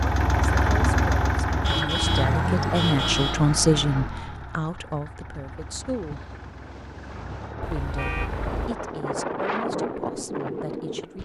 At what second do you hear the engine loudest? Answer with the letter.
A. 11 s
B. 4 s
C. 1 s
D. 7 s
C.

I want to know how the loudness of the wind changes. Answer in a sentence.
The loudness of the wind goes up.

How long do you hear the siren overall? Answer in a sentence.
The siren can't be heard in this clip.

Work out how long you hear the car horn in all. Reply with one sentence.
The car horn can be heard for 3 seconds in total.